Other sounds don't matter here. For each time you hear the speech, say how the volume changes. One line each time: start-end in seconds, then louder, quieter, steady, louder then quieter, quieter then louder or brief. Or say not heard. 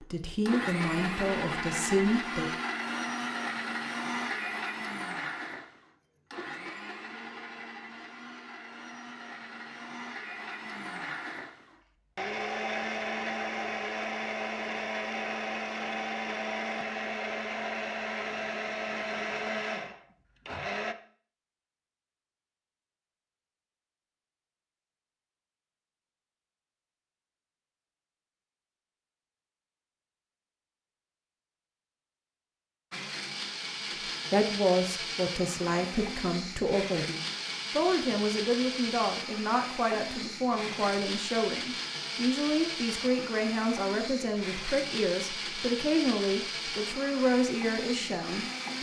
0.0-2.5 brief
34.3-48.7 steady.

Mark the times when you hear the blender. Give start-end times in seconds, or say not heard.
0.0-20.9, 32.9-48.7.